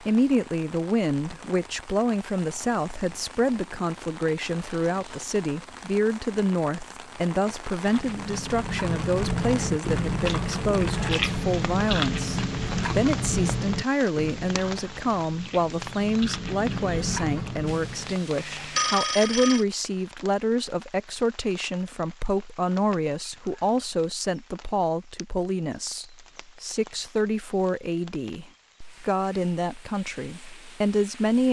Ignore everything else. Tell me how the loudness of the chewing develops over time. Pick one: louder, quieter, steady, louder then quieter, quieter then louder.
quieter then louder.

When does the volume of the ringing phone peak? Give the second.
19 s.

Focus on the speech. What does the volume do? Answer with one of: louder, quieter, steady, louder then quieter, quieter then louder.
steady.